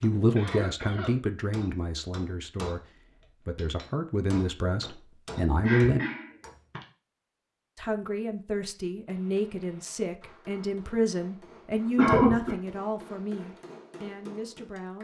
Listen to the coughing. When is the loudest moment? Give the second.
12 s.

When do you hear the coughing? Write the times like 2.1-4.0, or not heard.
0.3-1.1, 5.6-6.8, 11.9-12.6.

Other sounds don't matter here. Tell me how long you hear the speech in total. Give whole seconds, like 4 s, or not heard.
13 s.